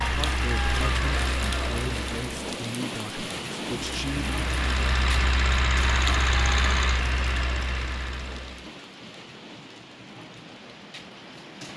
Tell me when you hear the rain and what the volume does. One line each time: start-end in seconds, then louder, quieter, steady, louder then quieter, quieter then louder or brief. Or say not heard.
0.0-11.7 quieter.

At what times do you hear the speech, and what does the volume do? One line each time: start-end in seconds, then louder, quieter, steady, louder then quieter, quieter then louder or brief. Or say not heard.
0.0-4.3 steady.